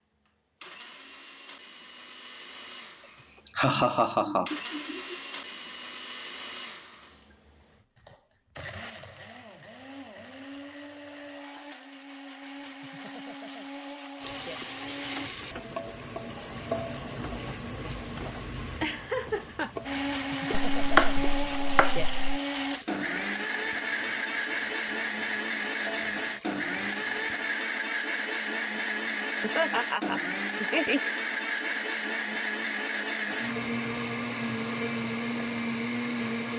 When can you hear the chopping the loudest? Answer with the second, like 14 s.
21 s.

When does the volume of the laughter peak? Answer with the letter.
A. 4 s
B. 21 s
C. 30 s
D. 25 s
A.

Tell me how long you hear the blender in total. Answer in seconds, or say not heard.
32 s.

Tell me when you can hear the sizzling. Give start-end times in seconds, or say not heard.
14.2-27.6.